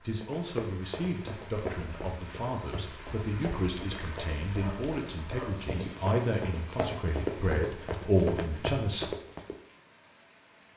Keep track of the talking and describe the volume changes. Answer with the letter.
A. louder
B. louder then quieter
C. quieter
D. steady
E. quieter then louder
A.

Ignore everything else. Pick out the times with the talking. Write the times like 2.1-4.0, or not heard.
0.0-9.1.